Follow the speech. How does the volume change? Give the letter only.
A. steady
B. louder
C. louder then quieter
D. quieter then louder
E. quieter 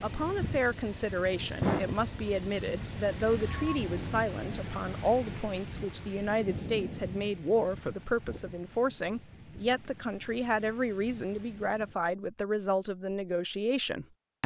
A.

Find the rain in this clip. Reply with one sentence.
You can hear the rain from 0.0 to 12.0 s.